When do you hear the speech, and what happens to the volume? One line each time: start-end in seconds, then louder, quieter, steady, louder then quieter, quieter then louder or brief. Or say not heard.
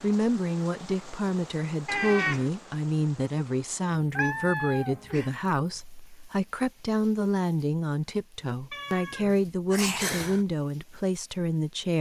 0.0-11.9 steady.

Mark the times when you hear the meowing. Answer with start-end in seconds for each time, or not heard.
1.9-2.5, 4.2-5.3, 8.7-10.4.